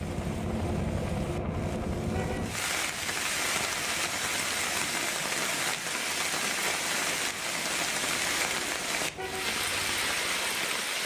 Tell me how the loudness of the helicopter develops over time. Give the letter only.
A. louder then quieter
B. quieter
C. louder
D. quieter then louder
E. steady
B.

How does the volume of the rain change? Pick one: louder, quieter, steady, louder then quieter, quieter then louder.
louder.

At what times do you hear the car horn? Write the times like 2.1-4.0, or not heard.
2.1-2.5, 9.2-9.6.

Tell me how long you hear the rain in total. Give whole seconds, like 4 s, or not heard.
11 s.